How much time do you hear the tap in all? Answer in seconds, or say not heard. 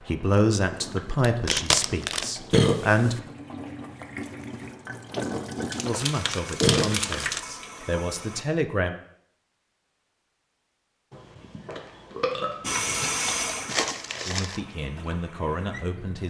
12 s.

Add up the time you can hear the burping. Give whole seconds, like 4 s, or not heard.
3 s.